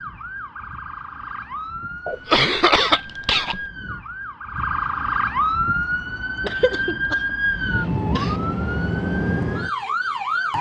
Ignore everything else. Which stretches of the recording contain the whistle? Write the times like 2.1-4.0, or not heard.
not heard.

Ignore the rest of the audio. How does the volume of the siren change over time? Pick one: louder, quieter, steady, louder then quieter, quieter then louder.
louder.